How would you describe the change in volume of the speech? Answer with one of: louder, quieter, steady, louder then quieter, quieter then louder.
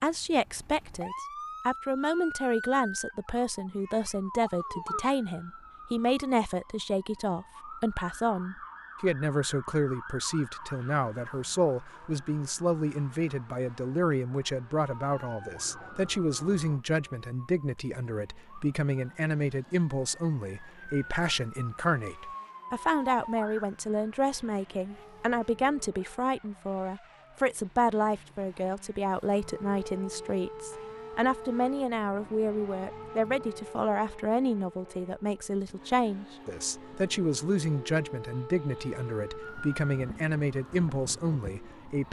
steady.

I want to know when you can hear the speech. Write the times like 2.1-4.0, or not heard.
0.0-42.0.